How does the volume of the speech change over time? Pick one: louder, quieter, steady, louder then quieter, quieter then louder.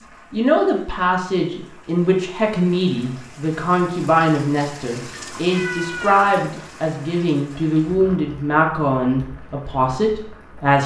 steady.